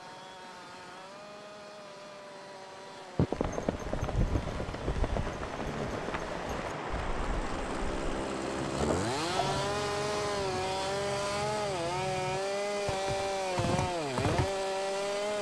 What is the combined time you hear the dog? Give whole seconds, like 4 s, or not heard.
not heard.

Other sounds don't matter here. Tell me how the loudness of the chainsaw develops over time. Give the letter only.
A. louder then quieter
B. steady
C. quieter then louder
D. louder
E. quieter
D.